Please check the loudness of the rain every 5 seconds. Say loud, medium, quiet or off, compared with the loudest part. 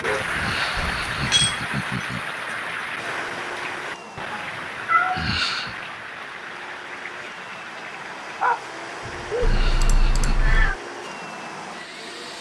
loud, medium, quiet.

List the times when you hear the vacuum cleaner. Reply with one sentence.
The vacuum cleaner can be heard from 3.0 to 12.3 s.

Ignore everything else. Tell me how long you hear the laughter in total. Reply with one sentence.
The laughter can be heard for 4 seconds in total.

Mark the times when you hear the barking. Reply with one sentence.
The barking can be heard from 0.0 to 1.6 s and from 8.4 to 9.7 s.